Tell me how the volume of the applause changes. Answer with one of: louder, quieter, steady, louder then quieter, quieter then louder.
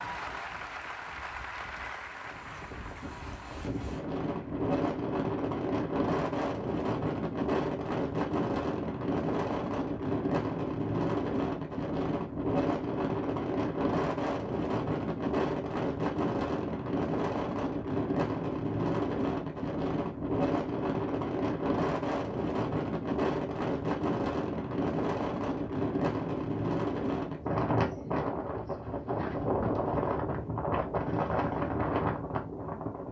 quieter.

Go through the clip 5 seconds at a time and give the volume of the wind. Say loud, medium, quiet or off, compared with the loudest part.
medium, loud, loud, loud, loud, loud, loud.